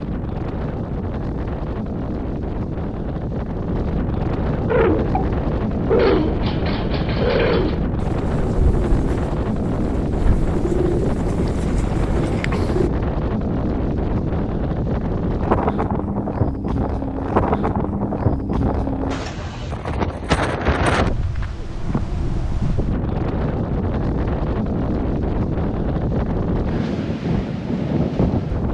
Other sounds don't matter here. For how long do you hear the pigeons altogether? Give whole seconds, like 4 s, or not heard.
8 s.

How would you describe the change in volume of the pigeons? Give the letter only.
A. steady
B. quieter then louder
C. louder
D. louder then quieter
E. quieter
E.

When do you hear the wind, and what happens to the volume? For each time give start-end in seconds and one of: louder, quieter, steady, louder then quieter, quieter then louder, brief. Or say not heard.
0.0-28.6 steady.